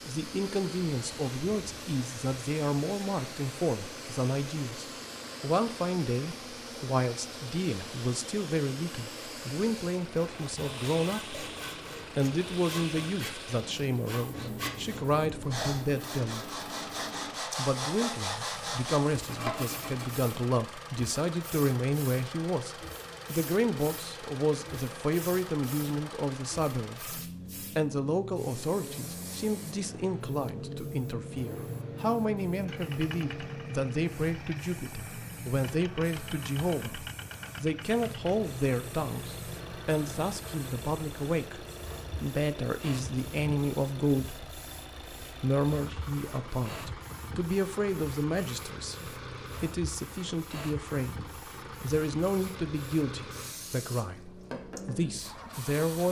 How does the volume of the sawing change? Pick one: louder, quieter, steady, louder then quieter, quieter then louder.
louder.